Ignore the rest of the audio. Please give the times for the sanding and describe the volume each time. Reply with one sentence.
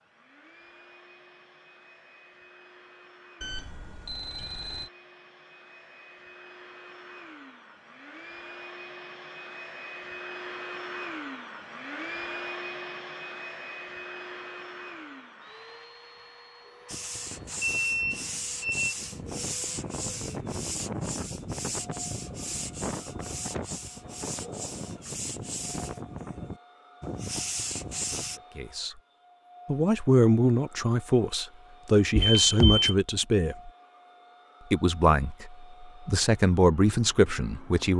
You can hear the sanding from 16.9 to 28.4 s, at a steady volume.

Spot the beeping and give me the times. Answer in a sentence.
The beeping can be heard from 3.4 to 4.9 s, from 17.8 to 18.9 s and from 32.1 to 33.0 s.